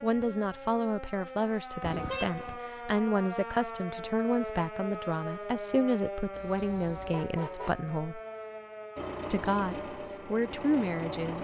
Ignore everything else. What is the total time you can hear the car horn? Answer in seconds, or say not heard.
2 s.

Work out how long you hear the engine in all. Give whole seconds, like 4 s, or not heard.
2 s.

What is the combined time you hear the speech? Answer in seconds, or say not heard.
10 s.